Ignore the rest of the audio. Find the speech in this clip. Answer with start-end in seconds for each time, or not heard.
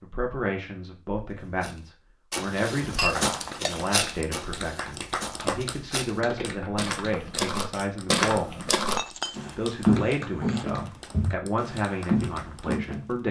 0.0-8.7, 9.6-13.2.